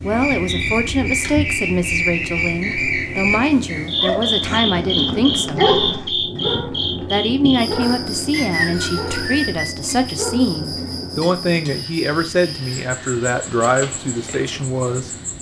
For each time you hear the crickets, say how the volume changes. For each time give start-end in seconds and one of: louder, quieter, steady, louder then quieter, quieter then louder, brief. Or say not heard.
0.0-15.3 quieter.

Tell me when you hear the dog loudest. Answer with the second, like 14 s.
6 s.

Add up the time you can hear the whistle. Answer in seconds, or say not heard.
4 s.